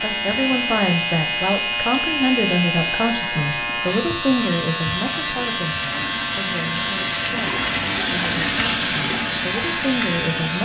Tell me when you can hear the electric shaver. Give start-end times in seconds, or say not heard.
0.0-10.6.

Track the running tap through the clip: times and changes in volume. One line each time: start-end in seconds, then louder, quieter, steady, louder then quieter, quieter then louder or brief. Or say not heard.
0.0-10.6 louder.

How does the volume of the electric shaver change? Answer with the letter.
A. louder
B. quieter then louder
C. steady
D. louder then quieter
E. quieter
C.